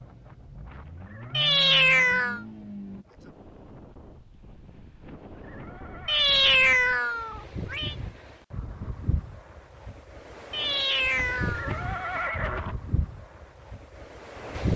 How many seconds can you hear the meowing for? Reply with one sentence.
You can hear the meowing for 4 seconds altogether.